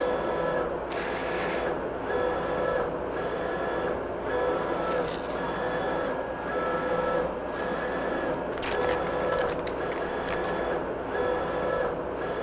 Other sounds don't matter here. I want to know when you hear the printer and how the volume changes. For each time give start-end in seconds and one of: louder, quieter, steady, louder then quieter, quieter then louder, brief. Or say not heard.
0.0-12.3 steady.